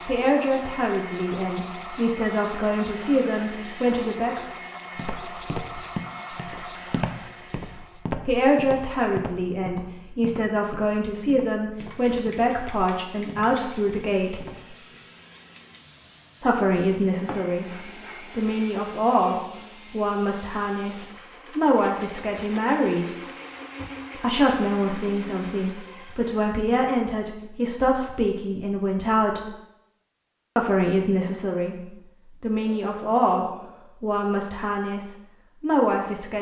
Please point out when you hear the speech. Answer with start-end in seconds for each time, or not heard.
0.1-4.5, 8.2-14.4, 16.4-23.1, 24.1-29.4, 30.6-36.3.